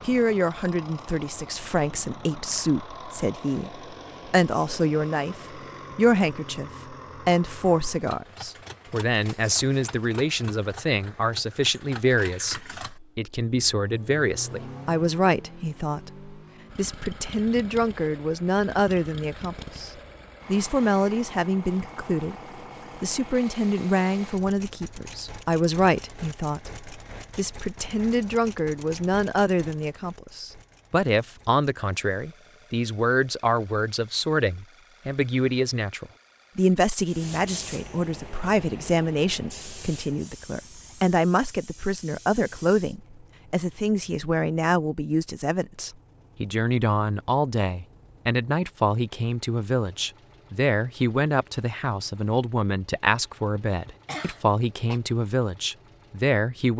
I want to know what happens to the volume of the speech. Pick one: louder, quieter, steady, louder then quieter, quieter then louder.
steady.